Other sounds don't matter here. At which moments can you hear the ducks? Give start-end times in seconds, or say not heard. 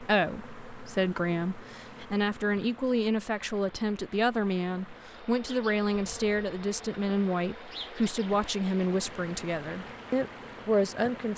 not heard.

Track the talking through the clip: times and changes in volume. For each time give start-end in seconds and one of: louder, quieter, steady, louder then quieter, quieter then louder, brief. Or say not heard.
0.0-11.3 steady.